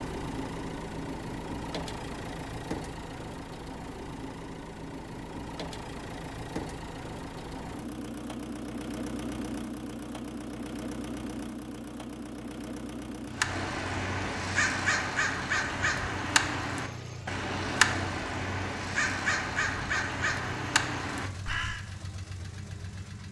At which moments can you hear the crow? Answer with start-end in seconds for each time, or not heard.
13.3-21.9.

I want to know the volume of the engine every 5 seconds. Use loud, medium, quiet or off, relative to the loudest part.
loud, loud, loud, medium, medium.